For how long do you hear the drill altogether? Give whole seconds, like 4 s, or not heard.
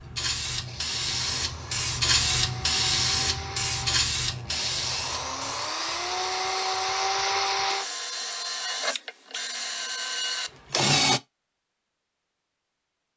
11 s.